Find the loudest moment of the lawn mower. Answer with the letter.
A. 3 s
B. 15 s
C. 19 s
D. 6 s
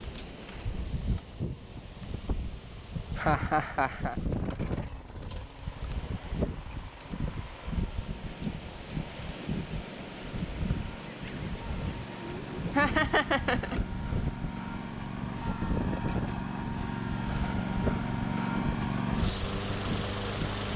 C.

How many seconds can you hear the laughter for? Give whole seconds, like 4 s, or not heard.
2 s.